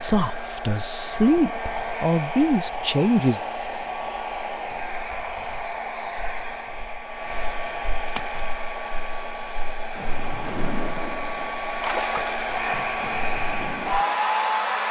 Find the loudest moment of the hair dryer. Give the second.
14 s.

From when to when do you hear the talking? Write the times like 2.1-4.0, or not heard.
0.0-3.4.